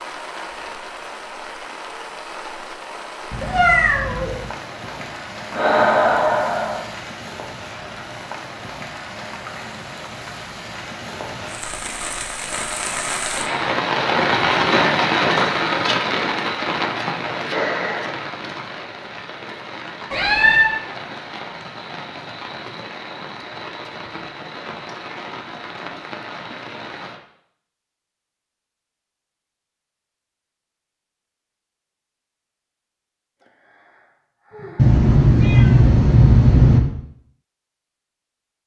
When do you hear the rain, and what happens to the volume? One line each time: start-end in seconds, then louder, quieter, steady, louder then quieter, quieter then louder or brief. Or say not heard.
0.0-27.2 louder then quieter.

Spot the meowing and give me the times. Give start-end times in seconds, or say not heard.
3.3-4.4, 20.1-20.7, 34.8-36.8.